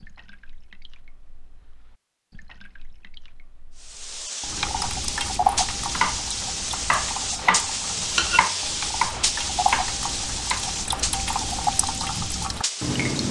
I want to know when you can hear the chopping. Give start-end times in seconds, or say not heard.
5.8-10.7.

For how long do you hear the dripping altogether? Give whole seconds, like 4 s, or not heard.
13 s.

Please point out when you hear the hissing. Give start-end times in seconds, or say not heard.
3.8-13.2.